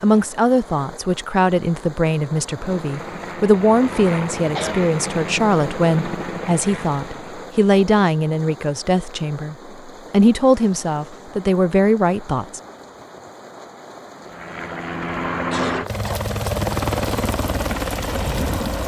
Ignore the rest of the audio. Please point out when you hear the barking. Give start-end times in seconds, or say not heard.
not heard.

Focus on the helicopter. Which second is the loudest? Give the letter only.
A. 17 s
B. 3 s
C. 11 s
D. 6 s
A.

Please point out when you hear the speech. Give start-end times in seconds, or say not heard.
0.0-12.6.